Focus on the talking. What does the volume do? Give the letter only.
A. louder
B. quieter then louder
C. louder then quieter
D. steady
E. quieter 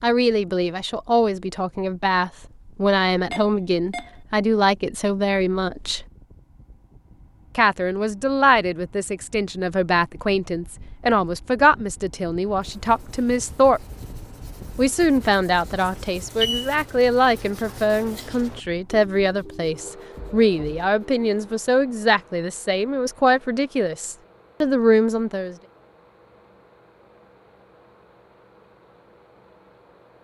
D.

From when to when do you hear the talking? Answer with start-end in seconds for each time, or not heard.
0.0-6.0, 7.5-13.8, 14.8-25.6.